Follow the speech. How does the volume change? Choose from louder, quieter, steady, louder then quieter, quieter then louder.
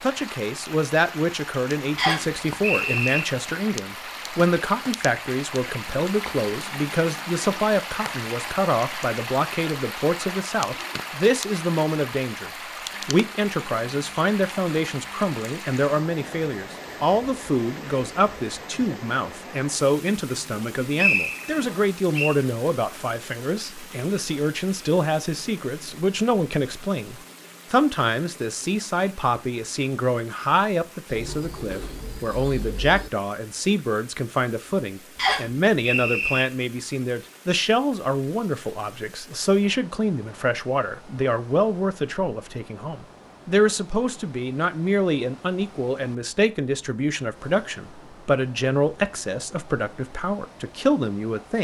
steady.